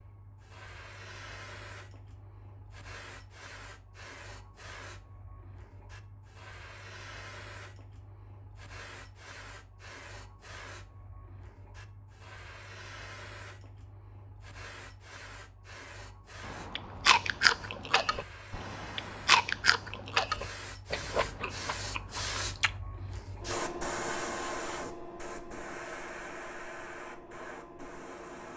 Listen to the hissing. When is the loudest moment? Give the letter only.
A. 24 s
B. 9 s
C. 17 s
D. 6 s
A.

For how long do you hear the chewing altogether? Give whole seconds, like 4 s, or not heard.
6 s.